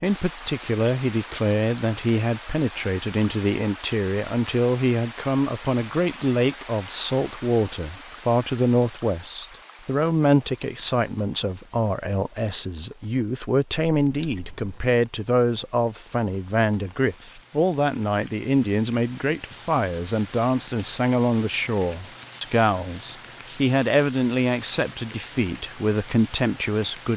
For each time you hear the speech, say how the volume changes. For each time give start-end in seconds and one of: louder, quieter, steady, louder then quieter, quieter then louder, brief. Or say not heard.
0.0-27.1 steady.